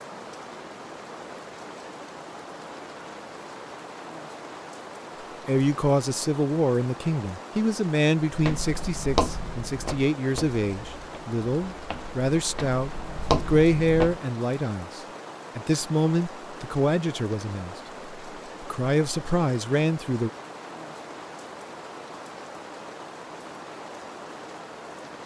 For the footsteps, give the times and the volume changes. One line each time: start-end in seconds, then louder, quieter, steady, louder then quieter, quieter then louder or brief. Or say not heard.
8.3-14.2 quieter then louder.